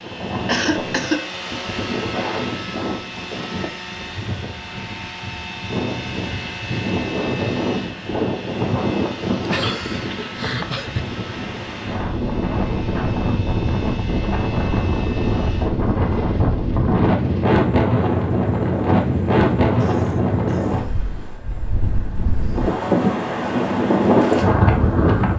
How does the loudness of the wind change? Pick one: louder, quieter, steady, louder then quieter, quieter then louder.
louder.